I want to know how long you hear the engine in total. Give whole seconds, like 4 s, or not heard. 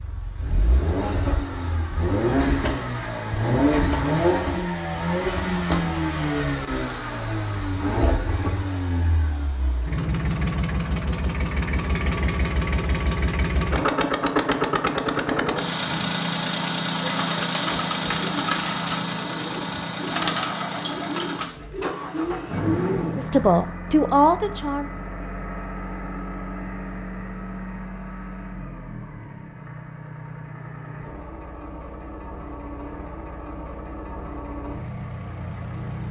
36 s.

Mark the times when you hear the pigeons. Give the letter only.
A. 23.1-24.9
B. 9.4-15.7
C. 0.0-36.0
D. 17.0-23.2
D.